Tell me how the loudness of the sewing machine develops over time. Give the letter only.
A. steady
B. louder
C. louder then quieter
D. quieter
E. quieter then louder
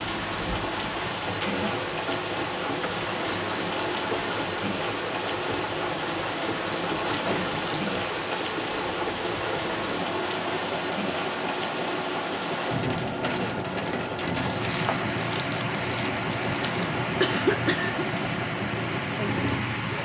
A.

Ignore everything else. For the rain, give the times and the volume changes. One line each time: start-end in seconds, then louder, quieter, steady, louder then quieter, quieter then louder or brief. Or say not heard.
0.0-19.9 steady.